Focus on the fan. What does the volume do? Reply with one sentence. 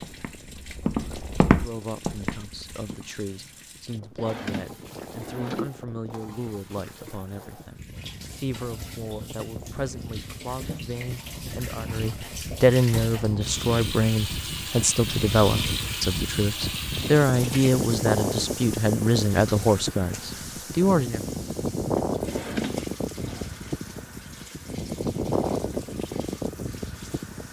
The loudness of the fan goes up.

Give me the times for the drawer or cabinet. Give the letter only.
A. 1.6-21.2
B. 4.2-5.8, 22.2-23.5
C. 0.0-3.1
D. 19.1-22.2
B.